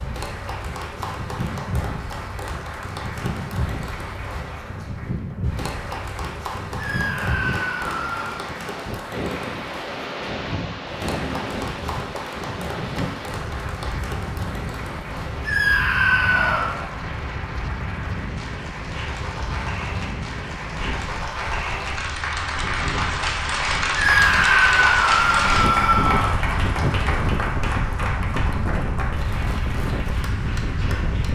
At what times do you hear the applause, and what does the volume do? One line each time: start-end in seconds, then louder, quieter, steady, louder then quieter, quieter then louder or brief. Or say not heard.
0.0-31.2 louder.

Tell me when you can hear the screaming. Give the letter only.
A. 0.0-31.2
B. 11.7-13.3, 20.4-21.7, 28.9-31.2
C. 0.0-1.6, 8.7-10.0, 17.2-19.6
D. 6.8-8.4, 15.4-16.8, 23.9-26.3
D.